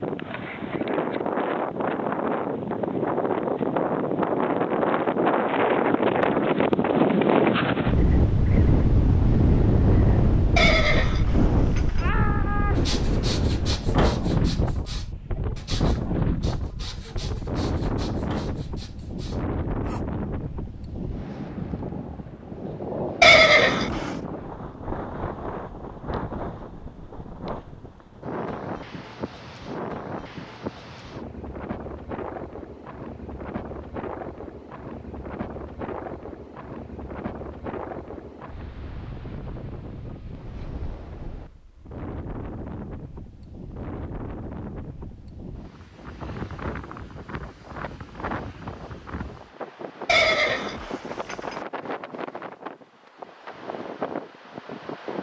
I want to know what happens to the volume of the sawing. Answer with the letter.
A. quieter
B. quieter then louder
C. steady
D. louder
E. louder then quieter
A.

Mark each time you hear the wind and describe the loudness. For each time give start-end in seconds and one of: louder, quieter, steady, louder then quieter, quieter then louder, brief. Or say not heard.
0.0-55.1 quieter.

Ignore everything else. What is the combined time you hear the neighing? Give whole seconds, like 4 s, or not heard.
4 s.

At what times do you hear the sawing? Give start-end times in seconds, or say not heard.
12.8-20.1.